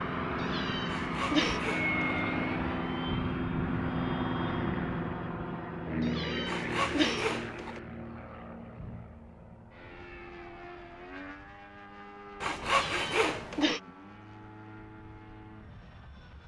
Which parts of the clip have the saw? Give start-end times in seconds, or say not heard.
0.8-2.2, 6.5-7.8, 12.4-13.8.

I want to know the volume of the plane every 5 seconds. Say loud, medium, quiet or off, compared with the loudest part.
loud, medium, quiet, quiet.